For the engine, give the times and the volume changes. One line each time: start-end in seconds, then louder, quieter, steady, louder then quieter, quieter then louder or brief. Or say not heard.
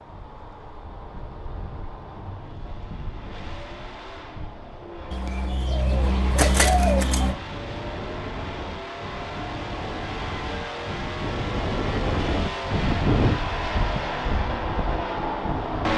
0.0-15.9 louder.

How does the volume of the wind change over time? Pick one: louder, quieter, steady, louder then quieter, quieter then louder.
louder.